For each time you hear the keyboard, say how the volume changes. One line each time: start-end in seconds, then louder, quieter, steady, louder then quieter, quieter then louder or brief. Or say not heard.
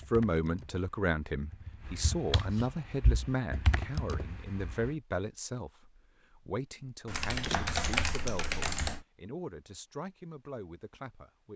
0.0-4.9 louder then quieter
7.0-9.1 brief.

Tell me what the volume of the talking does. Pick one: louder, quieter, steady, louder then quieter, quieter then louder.
quieter.